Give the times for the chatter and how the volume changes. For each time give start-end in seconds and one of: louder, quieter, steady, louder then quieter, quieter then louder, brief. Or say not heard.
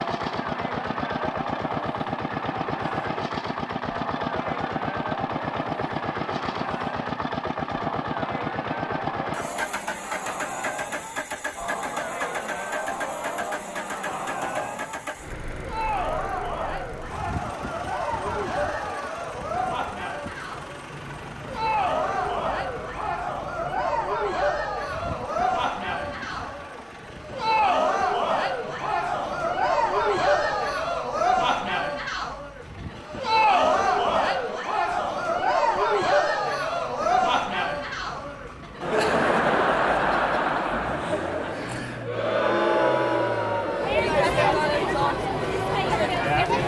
0.0-46.6 louder.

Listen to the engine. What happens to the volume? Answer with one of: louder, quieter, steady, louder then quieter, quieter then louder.
quieter.